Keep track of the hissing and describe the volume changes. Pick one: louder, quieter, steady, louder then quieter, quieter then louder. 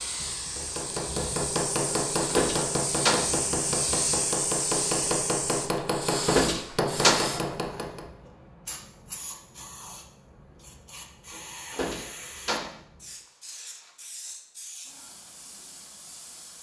quieter.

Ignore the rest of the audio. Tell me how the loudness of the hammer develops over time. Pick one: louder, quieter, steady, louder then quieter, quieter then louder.
steady.